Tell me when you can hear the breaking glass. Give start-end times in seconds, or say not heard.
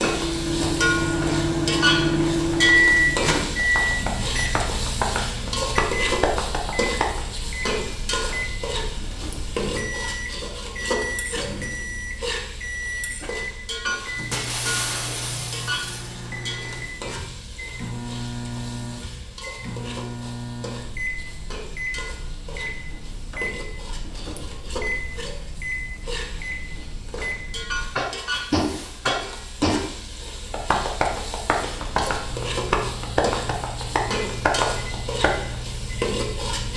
14.3-16.1, 28.3-29.1.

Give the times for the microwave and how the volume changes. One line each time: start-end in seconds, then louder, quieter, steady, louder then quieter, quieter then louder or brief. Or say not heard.
0.0-27.9 quieter
31.7-36.7 steady.